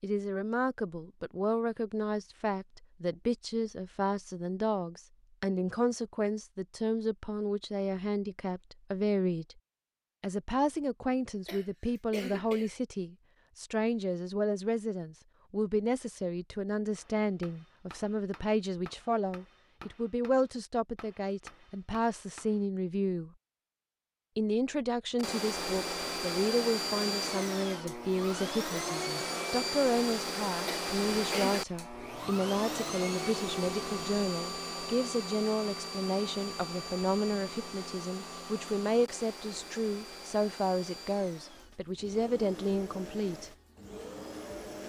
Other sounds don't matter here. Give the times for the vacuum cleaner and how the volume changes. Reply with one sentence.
You can hear the vacuum cleaner from 25.1 to 44.8 s, getting quieter.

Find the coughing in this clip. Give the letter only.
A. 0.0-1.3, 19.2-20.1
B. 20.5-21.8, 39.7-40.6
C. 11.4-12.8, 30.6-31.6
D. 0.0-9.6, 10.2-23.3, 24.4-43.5
C.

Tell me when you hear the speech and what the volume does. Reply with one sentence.
You can hear the speech from 0.0 to 9.6 s, at a steady volume; from 10.2 to 23.3 s, at a steady volume; and from 24.4 to 43.5 s, at a steady volume.